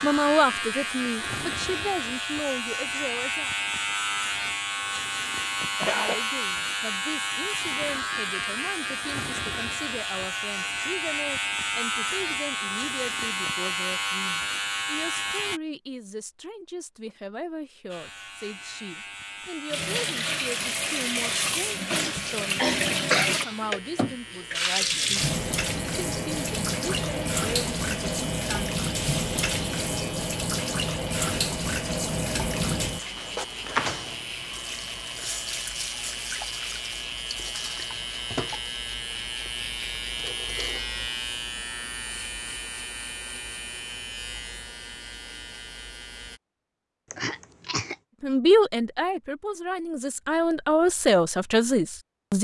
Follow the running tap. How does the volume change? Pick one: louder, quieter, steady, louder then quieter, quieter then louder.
quieter.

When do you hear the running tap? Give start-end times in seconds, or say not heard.
19.7-40.9.